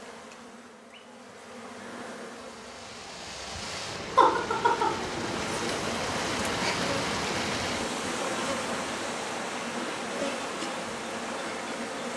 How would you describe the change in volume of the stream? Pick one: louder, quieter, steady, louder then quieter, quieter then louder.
louder then quieter.